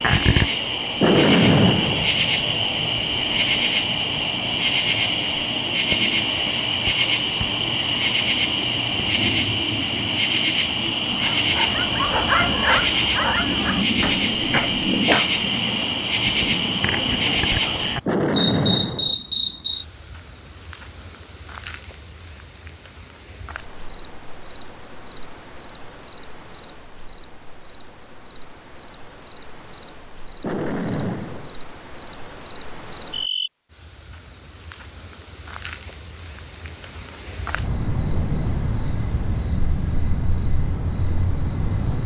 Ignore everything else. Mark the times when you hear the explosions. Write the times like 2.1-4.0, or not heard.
1.0-2.1, 18.1-19.1, 30.4-31.6.